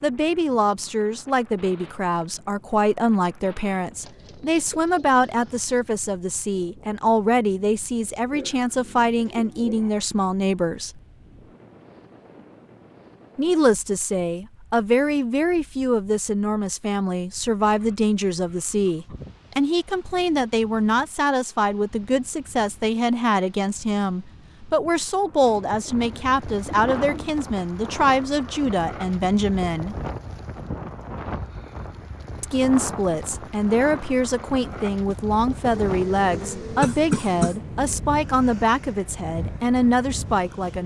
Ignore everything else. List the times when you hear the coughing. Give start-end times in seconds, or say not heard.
36.8-37.5.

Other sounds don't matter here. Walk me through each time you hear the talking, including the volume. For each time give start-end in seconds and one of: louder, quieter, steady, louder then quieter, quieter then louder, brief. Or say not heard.
0.0-11.0 steady
13.3-30.0 steady
32.4-40.8 steady.